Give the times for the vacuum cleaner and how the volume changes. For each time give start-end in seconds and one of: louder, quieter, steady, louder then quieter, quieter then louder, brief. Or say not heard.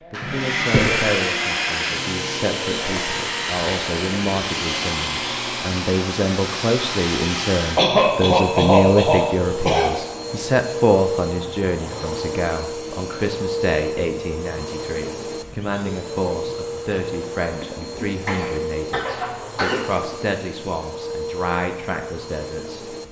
0.0-23.0 quieter.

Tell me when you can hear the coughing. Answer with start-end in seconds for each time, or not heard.
0.2-1.1, 7.8-10.1, 17.6-20.1.